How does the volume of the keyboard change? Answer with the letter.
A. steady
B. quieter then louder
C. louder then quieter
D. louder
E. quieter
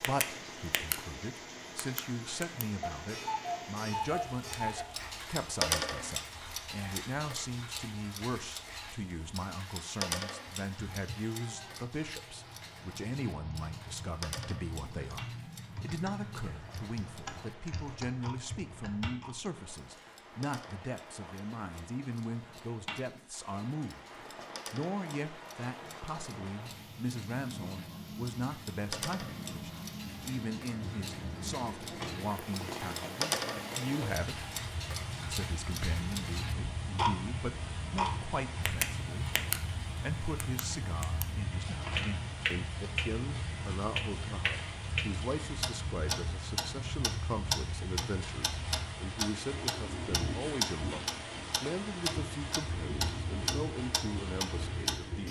D.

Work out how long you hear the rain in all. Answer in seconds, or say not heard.
55 s.